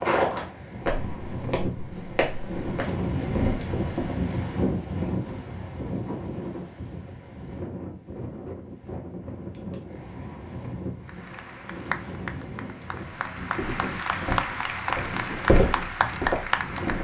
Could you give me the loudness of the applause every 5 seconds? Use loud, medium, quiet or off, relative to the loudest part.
off, off, loud, loud.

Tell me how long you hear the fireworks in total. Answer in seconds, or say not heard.
not heard.